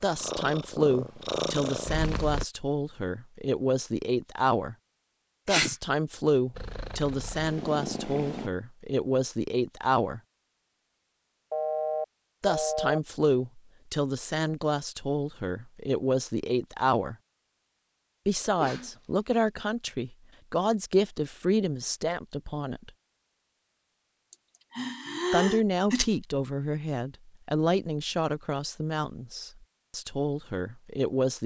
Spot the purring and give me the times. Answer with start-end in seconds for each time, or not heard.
0.0-2.5, 6.5-8.5.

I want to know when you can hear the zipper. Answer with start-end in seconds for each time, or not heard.
not heard.